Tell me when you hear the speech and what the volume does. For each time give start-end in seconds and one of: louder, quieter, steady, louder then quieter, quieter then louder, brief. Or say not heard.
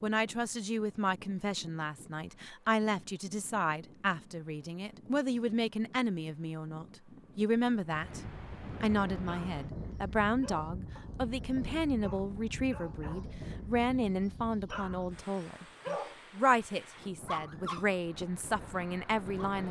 0.0-19.6 steady.